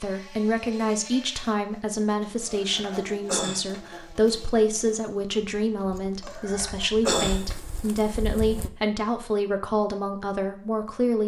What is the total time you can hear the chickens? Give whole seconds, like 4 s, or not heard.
3 s.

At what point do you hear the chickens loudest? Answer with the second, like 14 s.
7 s.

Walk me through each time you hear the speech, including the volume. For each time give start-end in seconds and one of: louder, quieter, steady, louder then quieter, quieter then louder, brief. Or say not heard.
0.0-11.2 steady.